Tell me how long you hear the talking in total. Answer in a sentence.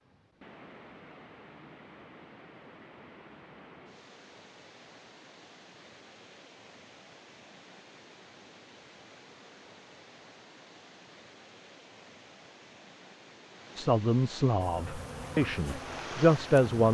The talking can be heard for 3 seconds in total.